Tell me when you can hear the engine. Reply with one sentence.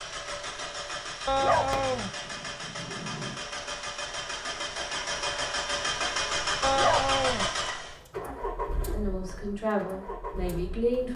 The engine can be heard from 0.0 to 11.1 s.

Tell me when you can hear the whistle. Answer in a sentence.
The whistle can't be heard in this clip.